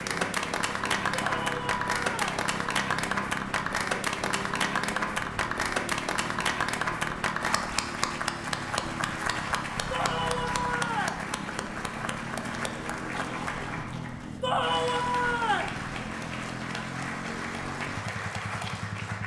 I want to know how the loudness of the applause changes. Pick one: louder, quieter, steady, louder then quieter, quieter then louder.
quieter.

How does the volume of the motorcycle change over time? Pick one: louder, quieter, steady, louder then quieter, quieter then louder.
steady.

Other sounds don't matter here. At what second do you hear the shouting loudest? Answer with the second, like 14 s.
15 s.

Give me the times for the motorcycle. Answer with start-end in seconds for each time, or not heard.
0.0-19.2.